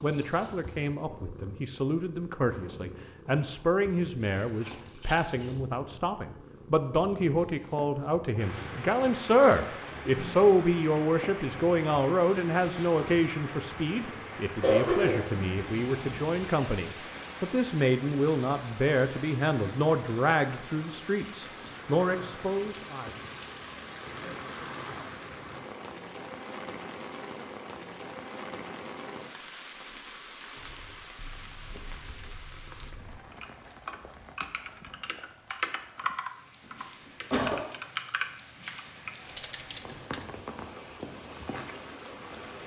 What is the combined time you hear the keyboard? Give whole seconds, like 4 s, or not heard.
10 s.